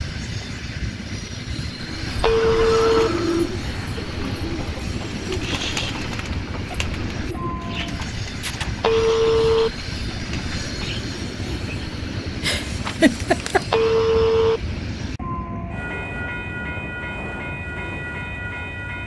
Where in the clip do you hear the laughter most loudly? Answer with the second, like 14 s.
13 s.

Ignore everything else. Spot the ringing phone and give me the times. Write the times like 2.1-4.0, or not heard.
2.2-3.1, 8.8-9.7, 13.7-14.6.